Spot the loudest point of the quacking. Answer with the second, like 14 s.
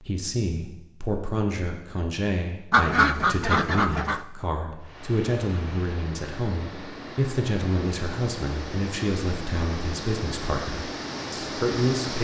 3 s.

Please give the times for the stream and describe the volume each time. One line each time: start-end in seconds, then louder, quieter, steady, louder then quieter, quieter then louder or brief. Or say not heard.
4.8-12.1 louder.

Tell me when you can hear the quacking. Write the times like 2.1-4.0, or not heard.
2.7-4.2.